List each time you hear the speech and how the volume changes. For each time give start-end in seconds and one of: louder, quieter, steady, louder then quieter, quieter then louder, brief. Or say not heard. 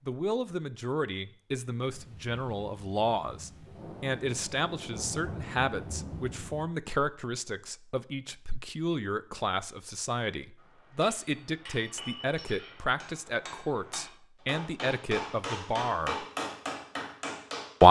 0.1-16.2 steady.